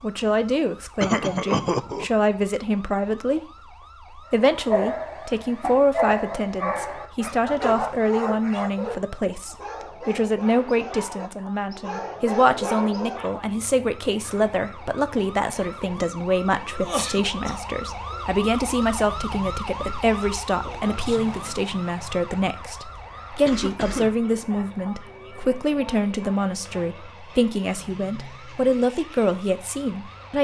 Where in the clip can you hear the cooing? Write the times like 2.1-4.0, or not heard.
not heard.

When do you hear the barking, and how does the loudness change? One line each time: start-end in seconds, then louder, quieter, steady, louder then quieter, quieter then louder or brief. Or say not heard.
4.4-13.3 quieter then louder.